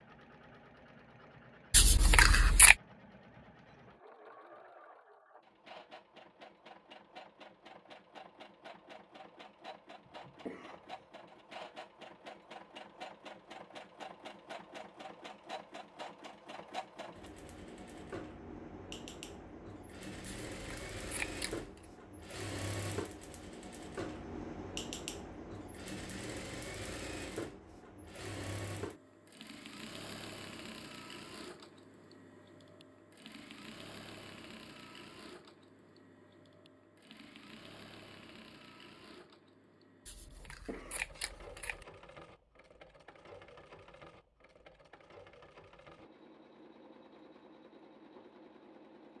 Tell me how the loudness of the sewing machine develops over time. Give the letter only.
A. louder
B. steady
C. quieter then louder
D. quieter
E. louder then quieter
E.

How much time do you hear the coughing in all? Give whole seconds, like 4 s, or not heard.
2 s.